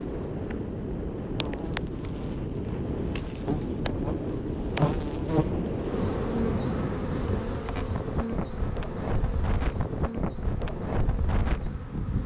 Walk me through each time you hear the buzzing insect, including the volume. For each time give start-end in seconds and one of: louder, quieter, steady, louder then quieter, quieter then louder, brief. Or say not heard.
0.0-12.2 louder then quieter.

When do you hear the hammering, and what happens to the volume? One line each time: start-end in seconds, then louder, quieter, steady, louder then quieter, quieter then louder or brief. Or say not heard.
not heard.